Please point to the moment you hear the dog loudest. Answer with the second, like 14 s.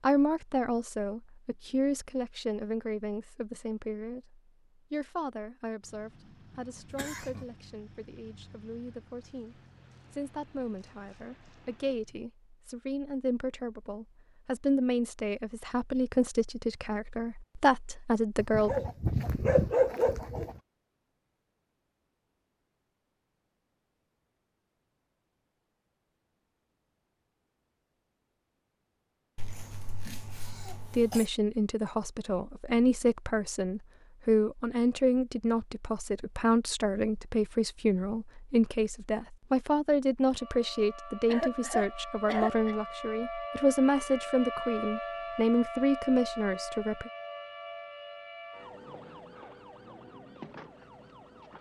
20 s.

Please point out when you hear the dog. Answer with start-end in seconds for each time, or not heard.
18.4-20.6.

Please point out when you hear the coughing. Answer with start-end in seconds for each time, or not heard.
6.9-7.5, 29.4-31.2, 41.3-42.8.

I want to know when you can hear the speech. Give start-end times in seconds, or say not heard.
0.0-18.8, 30.9-47.1.